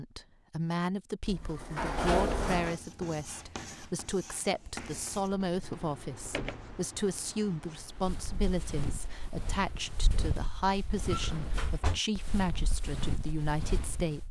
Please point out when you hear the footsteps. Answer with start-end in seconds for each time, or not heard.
7.8-14.2.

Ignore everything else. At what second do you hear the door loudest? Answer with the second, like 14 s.
2 s.